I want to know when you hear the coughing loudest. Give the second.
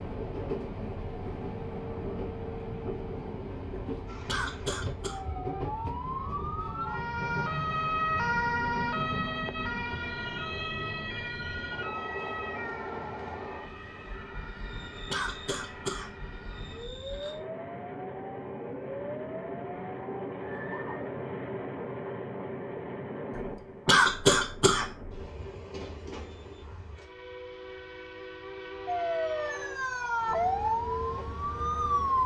24 s.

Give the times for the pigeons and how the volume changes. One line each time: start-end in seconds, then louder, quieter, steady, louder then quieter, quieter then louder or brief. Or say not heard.
not heard.